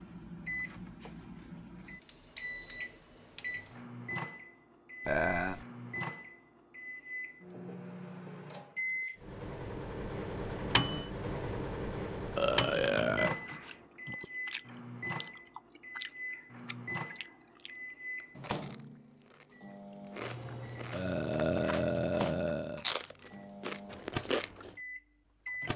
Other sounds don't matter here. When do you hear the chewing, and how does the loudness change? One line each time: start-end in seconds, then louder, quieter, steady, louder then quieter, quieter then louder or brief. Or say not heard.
13.4-24.8 louder.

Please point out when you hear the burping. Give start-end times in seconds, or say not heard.
5.0-5.7, 12.3-14.2, 20.9-22.9.